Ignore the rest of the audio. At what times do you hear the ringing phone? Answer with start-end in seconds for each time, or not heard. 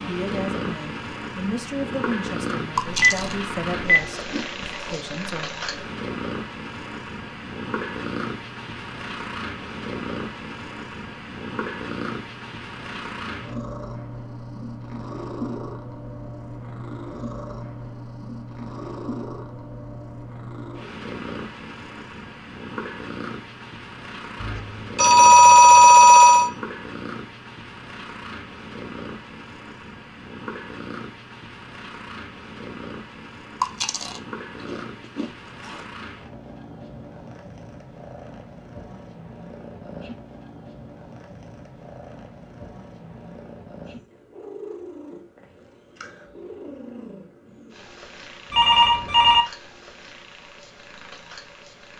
2.8-4.8, 24.4-26.5, 48.5-49.5.